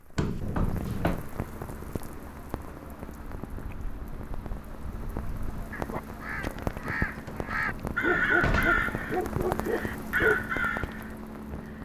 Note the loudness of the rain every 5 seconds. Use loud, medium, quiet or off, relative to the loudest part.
medium, loud, loud.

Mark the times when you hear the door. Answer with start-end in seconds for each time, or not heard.
0.1-1.2, 7.2-8.8.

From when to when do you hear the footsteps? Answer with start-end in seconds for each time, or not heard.
not heard.